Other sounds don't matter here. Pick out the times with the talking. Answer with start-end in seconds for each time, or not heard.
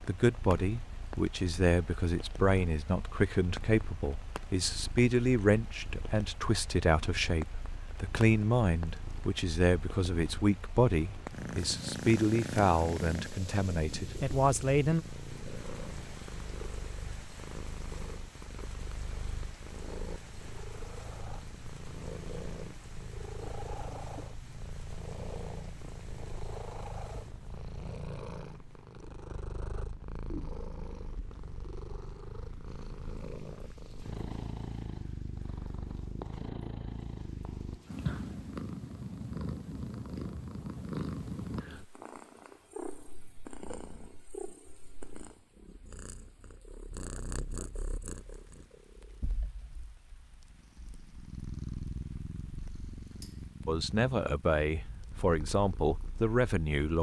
0.0-15.1, 53.6-56.9.